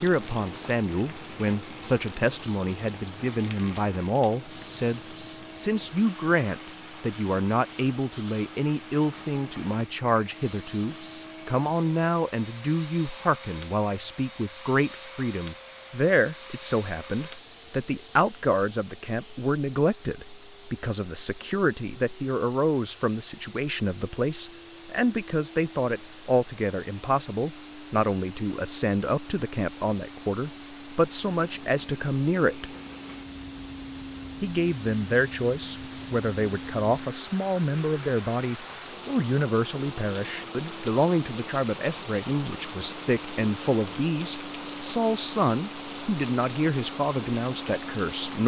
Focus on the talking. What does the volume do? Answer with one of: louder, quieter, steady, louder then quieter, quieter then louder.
steady.